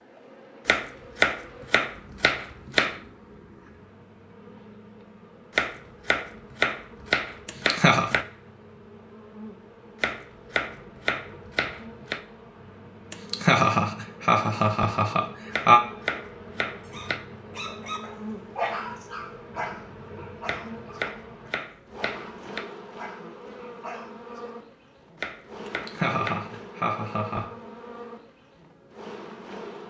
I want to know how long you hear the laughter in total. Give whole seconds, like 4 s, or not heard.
5 s.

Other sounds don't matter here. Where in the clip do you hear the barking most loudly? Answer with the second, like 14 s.
19 s.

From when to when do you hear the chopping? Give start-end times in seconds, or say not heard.
0.7-3.0, 5.5-8.2, 10.0-12.2, 15.5-17.2, 20.4-22.6, 25.2-26.5.